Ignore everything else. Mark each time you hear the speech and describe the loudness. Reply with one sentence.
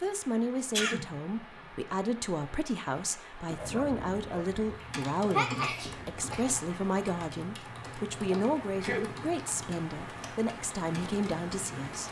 The speech can be heard from 0.0 to 12.0 s, at a steady volume.